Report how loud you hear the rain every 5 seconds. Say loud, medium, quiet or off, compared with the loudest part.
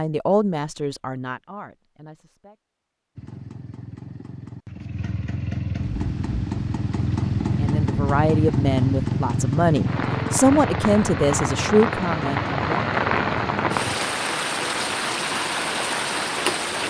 off, quiet, loud, loud.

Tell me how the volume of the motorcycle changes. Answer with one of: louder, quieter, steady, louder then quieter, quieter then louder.
louder then quieter.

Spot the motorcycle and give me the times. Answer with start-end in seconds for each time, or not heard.
3.1-14.0.